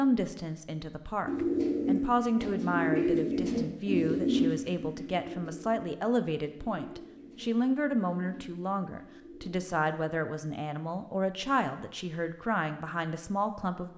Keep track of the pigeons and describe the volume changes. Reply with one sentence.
The volume of the pigeons goes down.